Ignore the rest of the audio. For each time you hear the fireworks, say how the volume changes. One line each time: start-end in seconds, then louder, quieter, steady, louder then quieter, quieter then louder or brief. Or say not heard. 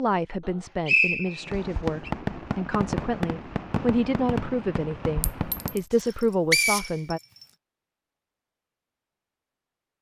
1.4-5.8 quieter.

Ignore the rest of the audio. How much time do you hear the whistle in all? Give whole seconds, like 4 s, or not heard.
2 s.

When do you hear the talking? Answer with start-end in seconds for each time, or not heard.
0.0-7.2.